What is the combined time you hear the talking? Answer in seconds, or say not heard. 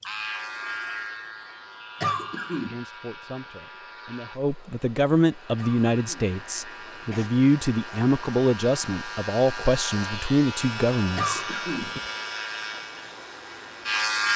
9 s.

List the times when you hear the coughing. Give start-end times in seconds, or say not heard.
2.0-2.8, 5.5-7.3, 11.2-12.1.